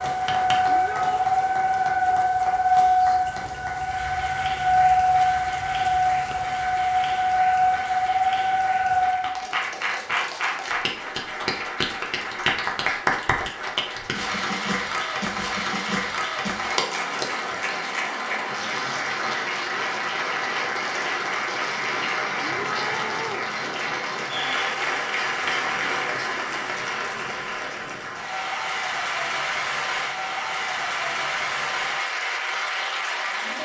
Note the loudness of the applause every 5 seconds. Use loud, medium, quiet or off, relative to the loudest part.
medium, medium, loud, loud, loud, loud, loud.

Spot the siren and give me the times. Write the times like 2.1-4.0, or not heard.
0.0-9.4.